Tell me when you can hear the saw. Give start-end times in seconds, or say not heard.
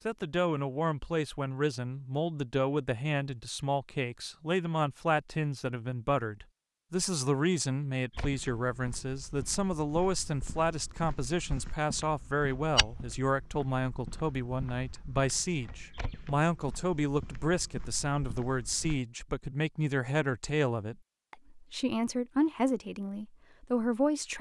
not heard.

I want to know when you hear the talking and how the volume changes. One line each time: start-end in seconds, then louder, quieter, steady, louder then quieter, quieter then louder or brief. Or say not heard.
0.1-24.3 steady.